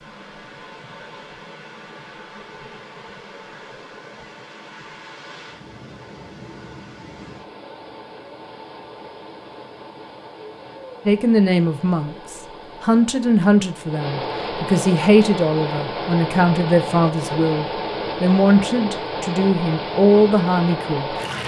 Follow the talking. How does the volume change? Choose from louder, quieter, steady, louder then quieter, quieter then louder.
steady.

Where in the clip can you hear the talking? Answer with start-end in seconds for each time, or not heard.
11.1-21.1.